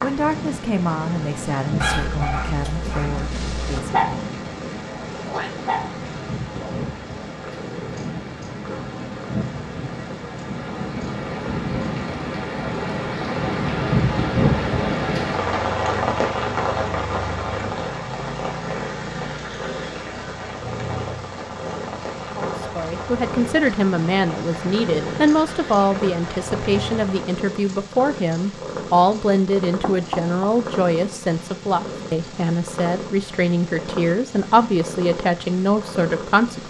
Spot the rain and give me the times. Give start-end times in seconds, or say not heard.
0.0-27.2.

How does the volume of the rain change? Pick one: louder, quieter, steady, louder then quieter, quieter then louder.
louder then quieter.